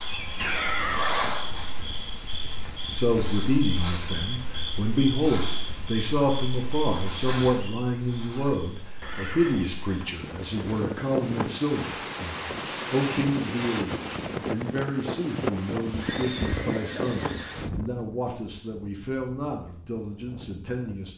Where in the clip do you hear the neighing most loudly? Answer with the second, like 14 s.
1 s.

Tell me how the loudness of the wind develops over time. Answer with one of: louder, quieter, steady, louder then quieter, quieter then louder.
quieter.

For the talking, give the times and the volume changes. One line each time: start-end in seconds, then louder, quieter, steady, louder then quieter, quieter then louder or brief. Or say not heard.
2.9-21.1 quieter.